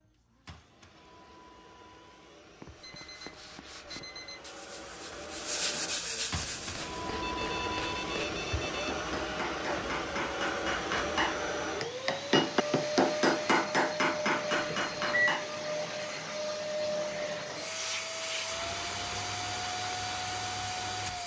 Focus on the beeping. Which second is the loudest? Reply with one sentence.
The loudest moment of the beeping is at 15 seconds.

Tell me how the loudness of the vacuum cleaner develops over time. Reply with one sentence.
The volume of the vacuum cleaner goes up.